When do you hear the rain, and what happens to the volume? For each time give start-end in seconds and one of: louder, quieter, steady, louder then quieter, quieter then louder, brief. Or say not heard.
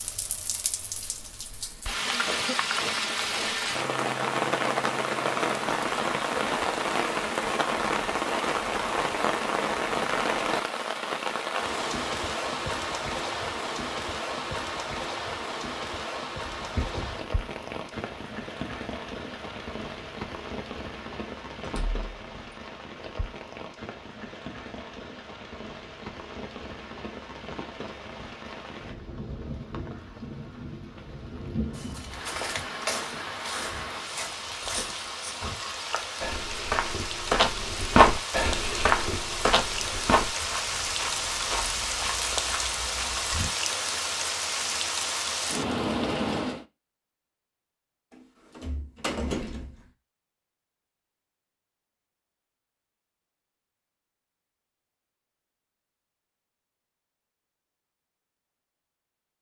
0.0-46.6 quieter then louder.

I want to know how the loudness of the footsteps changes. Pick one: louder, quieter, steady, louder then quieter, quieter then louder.
louder then quieter.